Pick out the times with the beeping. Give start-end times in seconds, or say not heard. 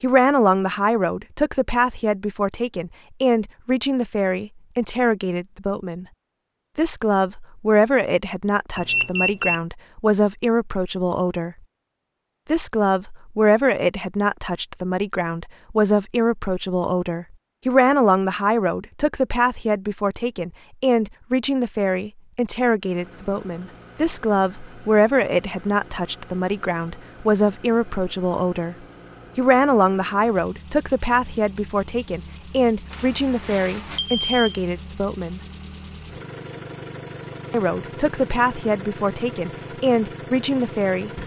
8.8-9.6, 32.9-34.6.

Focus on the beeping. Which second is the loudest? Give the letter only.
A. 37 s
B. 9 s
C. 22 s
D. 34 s
B.